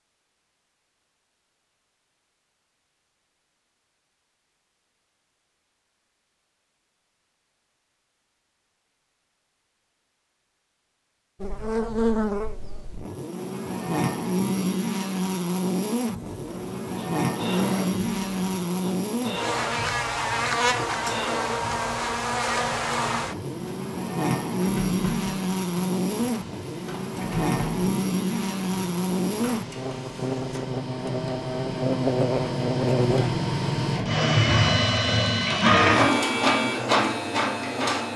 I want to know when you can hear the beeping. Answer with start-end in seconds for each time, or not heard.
not heard.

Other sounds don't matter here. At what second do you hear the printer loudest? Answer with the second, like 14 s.
36 s.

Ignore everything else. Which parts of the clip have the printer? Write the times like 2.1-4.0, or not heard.
16.1-38.1.